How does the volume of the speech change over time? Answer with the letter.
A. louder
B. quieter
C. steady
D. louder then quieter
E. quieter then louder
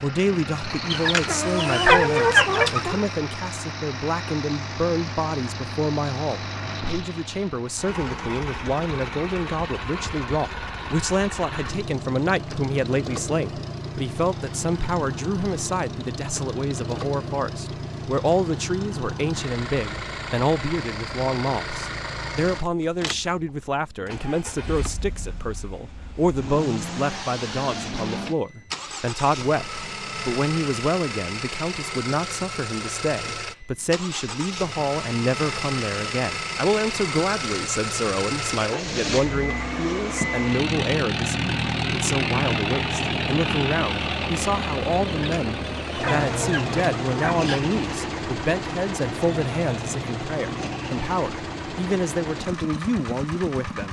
C.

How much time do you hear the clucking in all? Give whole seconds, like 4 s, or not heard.
5 s.